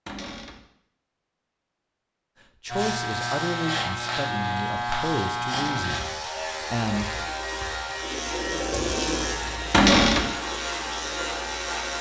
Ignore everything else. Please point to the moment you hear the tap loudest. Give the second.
9 s.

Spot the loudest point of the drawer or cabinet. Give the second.
10 s.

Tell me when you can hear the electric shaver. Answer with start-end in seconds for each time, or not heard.
2.7-11.9.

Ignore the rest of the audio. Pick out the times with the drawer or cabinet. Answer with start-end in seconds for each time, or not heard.
0.1-0.6, 5.5-5.9, 9.7-10.3.